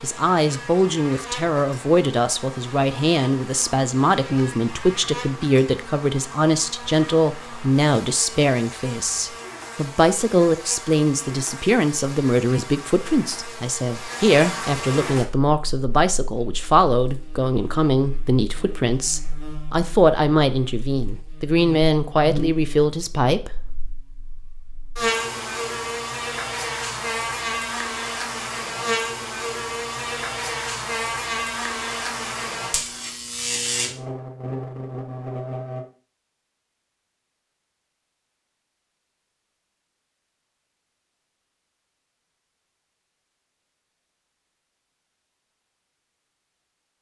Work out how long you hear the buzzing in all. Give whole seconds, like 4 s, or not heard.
36 s.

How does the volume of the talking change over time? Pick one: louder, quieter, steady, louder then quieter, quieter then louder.
steady.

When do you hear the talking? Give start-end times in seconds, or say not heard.
0.0-23.6.